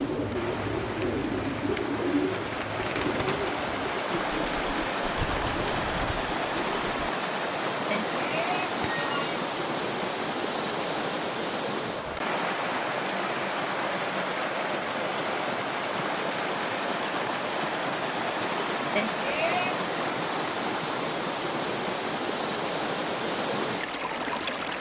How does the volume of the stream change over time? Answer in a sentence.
The loudness of the stream stays about the same.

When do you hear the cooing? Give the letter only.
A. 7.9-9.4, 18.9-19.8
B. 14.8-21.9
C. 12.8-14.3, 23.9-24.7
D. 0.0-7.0
D.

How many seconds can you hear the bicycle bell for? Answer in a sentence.
The bicycle bell can be heard for 2 seconds in total.